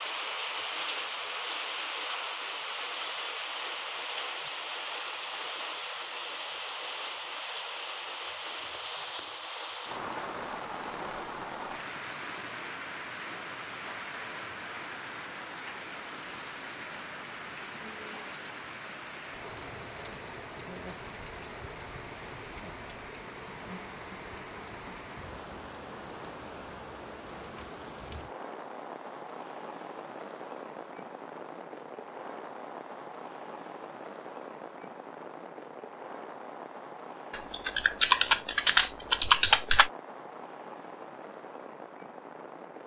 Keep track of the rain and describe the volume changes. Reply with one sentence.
The loudness of the rain goes down.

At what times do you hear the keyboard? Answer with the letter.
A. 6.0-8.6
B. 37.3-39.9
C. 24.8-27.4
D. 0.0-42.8
B.